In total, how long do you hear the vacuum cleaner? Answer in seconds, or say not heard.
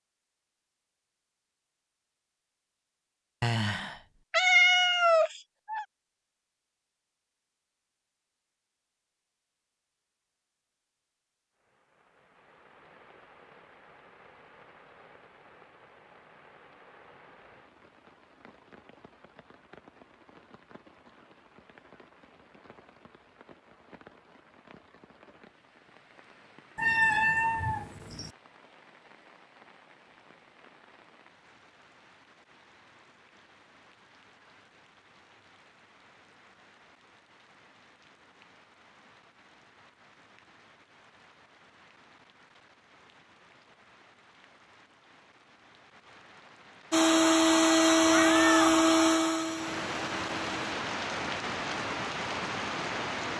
4 s.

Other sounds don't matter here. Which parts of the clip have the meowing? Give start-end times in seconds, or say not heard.
3.4-5.8, 26.8-28.3, 48.0-48.9.